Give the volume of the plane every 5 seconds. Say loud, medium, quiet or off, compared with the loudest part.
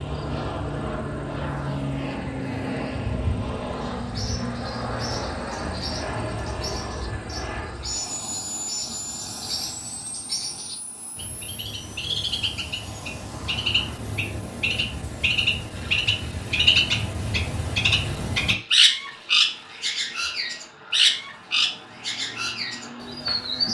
loud, loud, quiet, quiet, quiet.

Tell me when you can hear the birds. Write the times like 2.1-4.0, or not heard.
4.0-23.6.